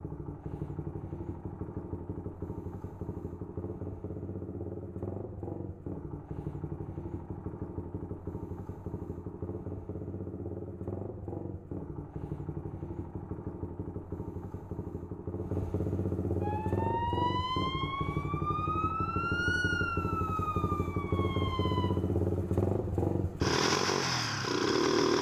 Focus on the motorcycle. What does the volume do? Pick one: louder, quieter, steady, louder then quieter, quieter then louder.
louder.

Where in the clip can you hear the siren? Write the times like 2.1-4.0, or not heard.
16.4-21.9.